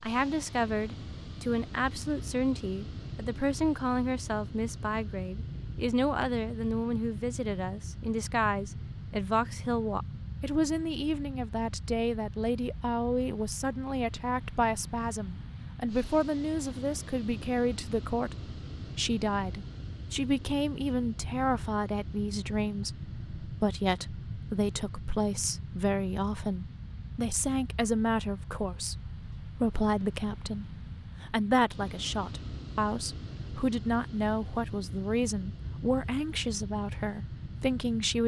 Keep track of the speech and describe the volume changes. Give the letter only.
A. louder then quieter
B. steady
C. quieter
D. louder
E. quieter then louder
B.